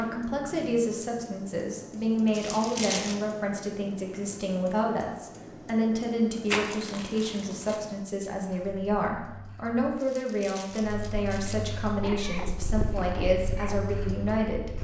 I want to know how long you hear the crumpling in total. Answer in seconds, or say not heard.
4 s.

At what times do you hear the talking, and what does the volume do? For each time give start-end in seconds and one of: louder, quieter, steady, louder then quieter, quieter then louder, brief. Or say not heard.
0.0-14.7 steady.